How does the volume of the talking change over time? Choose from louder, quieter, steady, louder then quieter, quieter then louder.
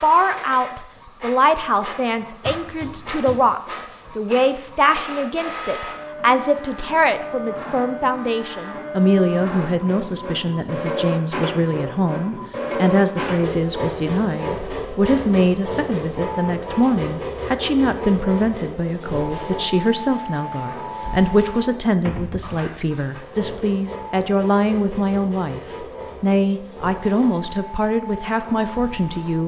steady.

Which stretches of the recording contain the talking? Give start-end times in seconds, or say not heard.
0.0-29.4.